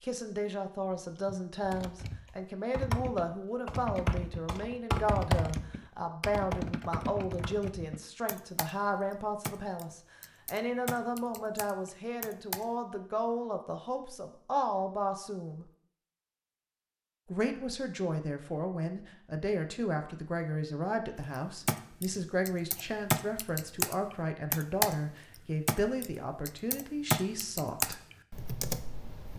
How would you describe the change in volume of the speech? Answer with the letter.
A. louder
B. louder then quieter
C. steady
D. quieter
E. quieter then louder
C.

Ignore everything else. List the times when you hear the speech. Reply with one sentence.
The speech can be heard from 0.0 to 15.7 s and from 17.2 to 28.0 s.